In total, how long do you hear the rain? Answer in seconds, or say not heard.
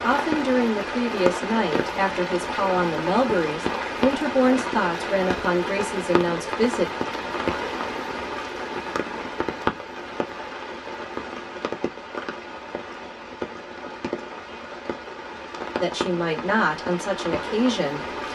18 s.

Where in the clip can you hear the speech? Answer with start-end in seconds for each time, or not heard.
0.0-6.9, 15.8-18.0.